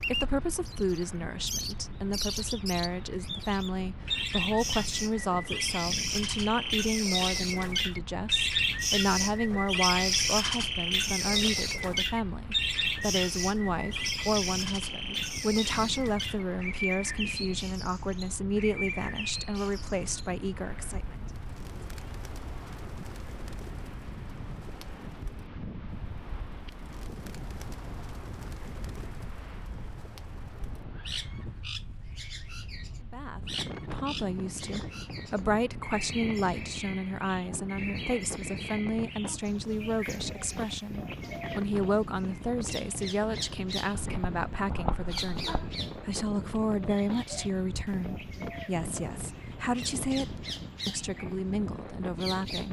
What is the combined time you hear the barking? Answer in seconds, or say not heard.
2 s.